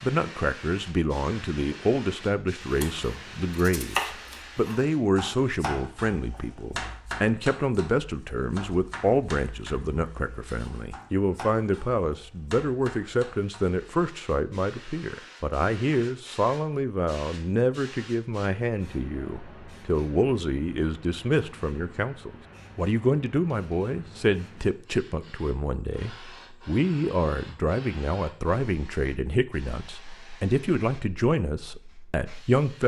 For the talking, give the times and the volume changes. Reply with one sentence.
The talking can be heard from 0.0 to 32.8 s, at a steady volume.